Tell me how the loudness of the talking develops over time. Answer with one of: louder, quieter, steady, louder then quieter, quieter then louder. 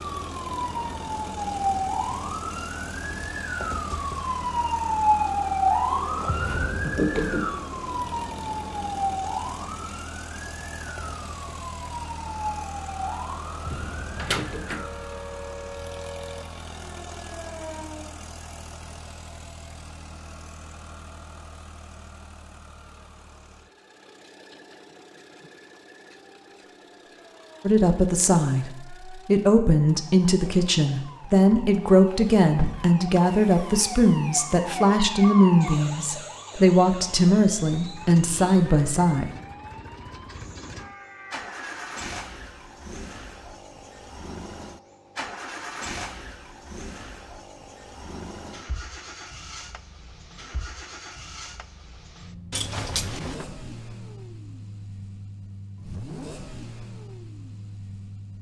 steady.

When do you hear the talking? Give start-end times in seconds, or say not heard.
27.6-39.3.